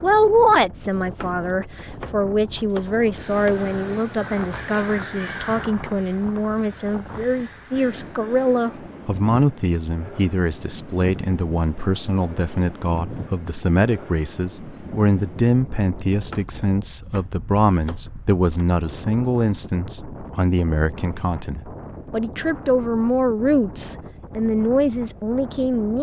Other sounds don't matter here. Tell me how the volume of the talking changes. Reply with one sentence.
The volume of the talking stays about the same.